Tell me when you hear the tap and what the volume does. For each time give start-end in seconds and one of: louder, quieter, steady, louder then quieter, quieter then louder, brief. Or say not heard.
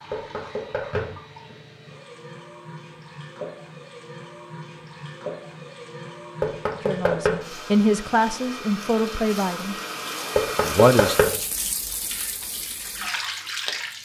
0.0-13.9 louder.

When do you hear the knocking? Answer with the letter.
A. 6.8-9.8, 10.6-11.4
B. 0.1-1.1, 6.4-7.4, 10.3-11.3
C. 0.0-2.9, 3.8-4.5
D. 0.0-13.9
B.